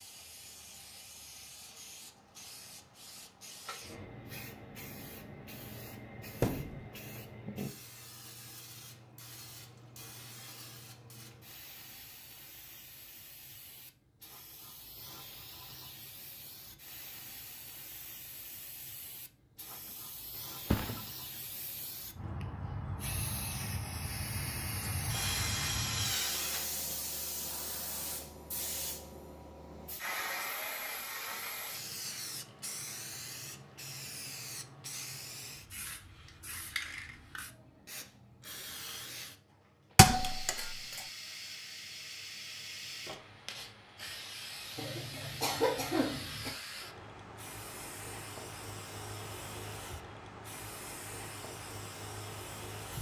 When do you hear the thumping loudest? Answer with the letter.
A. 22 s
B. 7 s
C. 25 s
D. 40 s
D.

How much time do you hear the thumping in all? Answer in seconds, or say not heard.
2 s.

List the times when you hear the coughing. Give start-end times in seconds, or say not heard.
44.8-46.5.